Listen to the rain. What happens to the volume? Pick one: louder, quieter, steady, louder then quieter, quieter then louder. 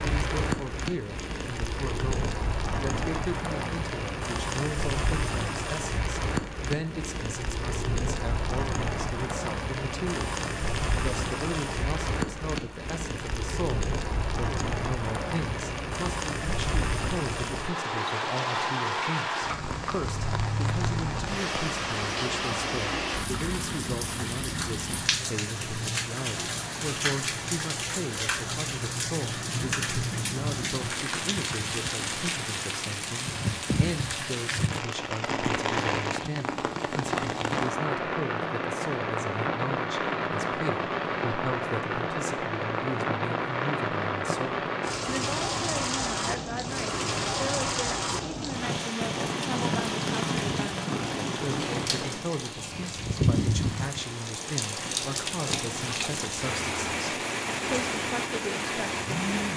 steady.